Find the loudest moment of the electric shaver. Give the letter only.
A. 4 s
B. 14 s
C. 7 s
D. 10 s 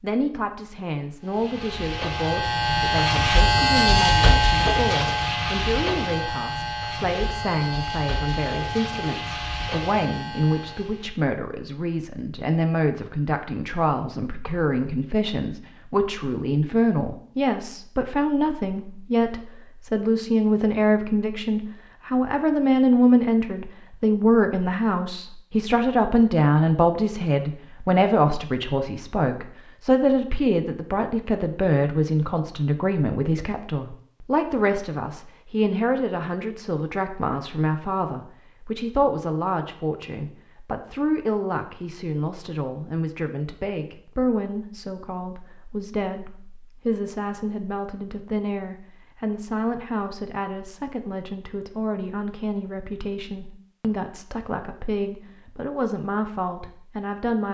A.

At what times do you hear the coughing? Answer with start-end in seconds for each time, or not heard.
not heard.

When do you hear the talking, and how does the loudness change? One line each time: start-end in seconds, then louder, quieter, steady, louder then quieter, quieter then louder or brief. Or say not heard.
0.0-57.4 louder then quieter.